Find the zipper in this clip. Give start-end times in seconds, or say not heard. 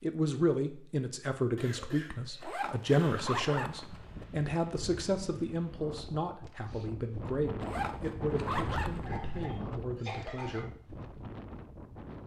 2.4-4.2, 7.6-9.4.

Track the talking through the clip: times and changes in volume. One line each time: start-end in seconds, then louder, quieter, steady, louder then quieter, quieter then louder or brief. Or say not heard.
0.0-10.7 quieter.